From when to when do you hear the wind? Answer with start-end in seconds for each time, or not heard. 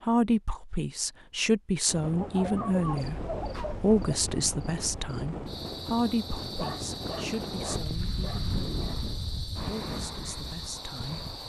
1.9-11.4.